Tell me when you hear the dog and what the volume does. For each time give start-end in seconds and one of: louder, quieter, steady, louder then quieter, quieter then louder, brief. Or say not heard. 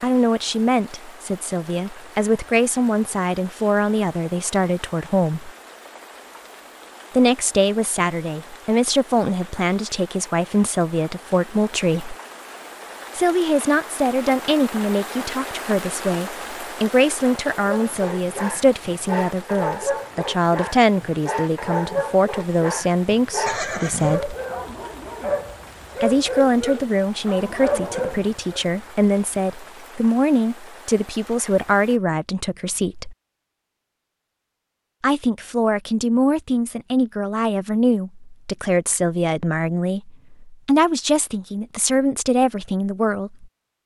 17.6-28.6 steady.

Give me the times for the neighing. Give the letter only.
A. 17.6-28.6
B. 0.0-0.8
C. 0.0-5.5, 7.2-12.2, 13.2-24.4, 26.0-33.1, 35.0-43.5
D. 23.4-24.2
D.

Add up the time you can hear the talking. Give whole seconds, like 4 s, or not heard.
37 s.